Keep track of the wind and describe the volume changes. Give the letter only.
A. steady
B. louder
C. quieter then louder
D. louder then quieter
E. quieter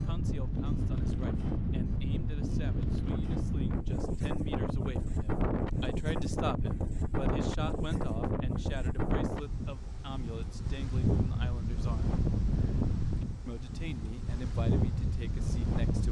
A.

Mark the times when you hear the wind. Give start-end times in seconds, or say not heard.
0.0-16.0.